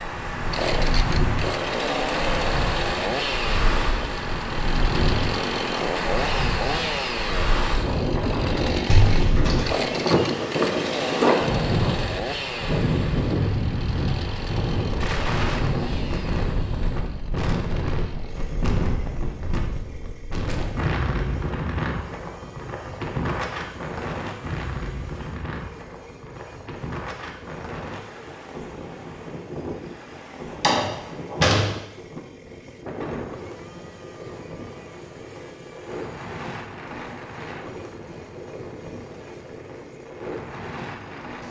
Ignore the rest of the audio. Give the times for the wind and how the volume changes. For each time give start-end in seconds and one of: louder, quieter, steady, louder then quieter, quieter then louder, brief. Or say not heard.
0.0-41.4 quieter.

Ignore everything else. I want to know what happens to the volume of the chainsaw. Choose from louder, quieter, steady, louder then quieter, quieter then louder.
quieter.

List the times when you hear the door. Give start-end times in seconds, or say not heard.
8.8-9.7, 30.5-31.8.